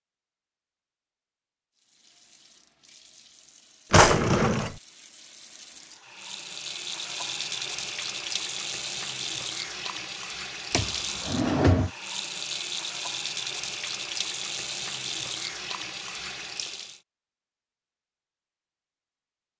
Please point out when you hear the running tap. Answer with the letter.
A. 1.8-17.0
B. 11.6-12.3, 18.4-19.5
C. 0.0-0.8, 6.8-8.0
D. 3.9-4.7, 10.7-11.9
A.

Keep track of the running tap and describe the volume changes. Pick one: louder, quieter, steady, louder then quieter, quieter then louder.
louder.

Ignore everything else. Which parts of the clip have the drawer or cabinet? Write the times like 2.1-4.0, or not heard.
3.9-4.7, 10.7-11.9.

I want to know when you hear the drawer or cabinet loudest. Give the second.
4 s.